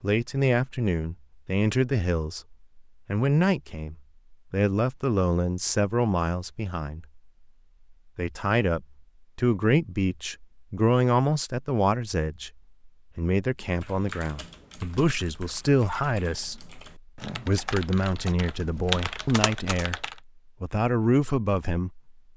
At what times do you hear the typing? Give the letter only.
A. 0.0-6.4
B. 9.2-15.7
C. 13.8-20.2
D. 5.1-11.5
C.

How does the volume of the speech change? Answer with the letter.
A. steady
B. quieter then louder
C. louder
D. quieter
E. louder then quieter
A.